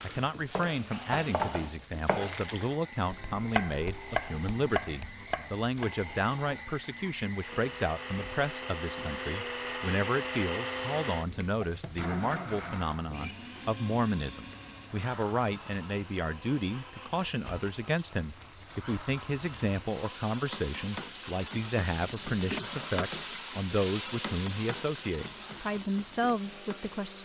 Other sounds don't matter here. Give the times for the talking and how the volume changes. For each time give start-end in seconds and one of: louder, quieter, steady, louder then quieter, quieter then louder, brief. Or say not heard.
0.0-27.2 steady.